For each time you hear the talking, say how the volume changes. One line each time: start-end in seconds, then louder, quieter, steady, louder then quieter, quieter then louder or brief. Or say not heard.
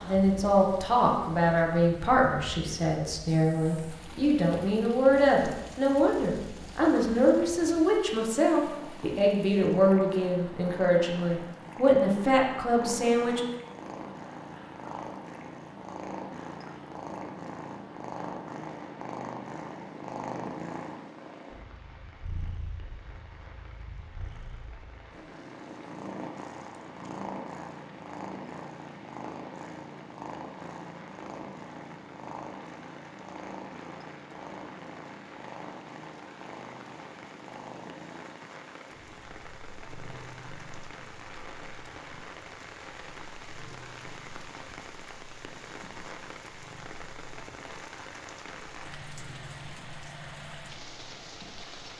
0.0-13.4 steady.